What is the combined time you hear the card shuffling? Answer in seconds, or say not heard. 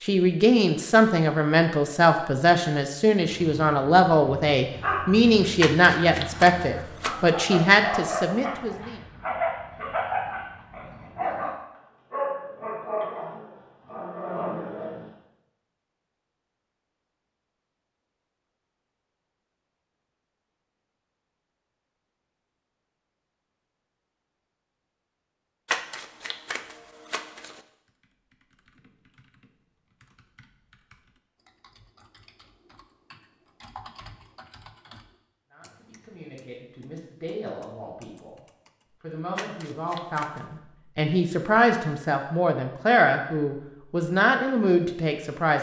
5 s.